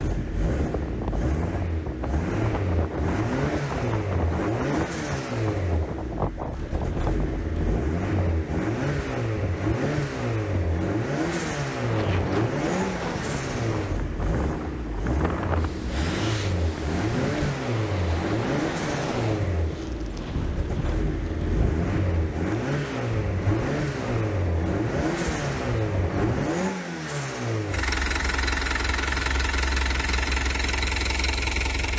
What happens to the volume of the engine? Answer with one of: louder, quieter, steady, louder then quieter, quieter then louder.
steady.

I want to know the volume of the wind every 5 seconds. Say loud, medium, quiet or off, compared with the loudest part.
loud, loud, loud, loud, loud, loud, off.